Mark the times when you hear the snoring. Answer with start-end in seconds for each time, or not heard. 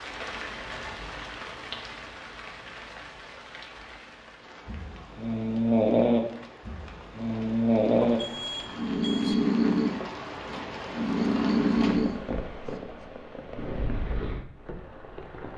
4.7-13.1.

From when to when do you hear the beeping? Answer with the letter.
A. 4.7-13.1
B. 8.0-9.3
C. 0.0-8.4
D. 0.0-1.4
B.